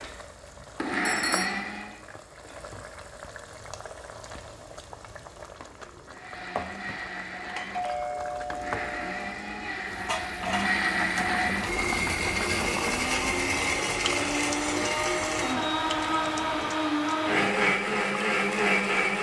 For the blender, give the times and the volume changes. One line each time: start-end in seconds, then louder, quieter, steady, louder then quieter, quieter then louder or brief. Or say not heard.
0.0-2.0 brief
6.0-19.1 louder.